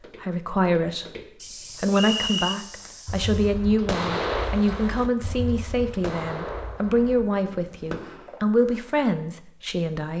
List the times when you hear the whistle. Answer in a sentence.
You can hear the whistle from 1.9 to 2.6 s.